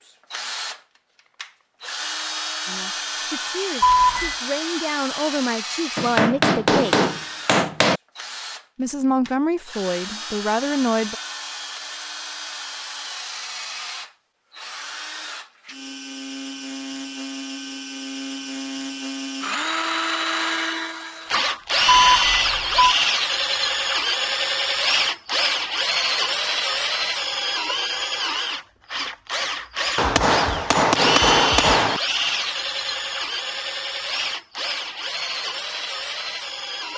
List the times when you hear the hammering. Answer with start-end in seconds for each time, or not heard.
6.0-8.0, 29.9-32.0.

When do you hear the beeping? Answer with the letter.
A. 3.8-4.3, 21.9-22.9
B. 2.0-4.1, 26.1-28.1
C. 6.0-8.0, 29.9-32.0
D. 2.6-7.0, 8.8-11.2
A.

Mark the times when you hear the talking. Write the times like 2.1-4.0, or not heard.
2.6-7.0, 8.8-11.2.